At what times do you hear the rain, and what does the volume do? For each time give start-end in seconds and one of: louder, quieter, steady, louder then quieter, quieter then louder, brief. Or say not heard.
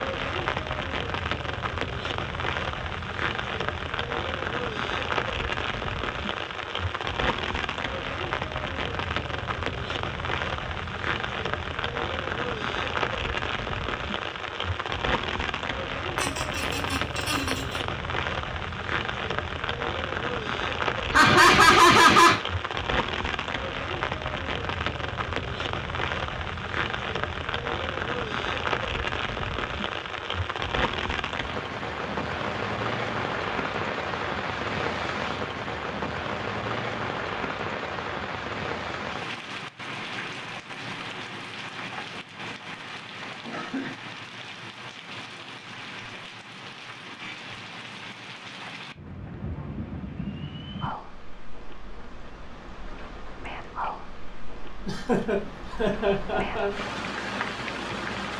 0.0-58.3 quieter.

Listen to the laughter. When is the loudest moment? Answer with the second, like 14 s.
22 s.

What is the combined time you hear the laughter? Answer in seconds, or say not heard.
5 s.